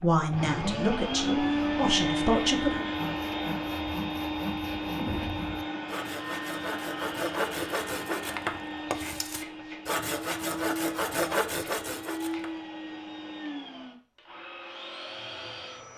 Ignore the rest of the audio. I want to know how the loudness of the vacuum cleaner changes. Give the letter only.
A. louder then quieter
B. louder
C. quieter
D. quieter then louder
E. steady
C.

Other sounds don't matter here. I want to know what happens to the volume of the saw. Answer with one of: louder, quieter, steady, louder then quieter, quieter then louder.
louder.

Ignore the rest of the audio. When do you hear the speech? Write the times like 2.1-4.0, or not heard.
0.0-2.8.